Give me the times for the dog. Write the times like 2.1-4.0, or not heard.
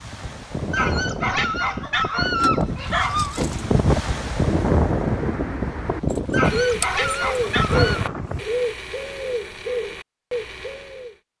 0.7-3.5, 6.3-8.0.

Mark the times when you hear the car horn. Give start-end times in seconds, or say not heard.
not heard.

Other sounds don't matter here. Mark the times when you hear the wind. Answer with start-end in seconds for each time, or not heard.
0.0-8.4.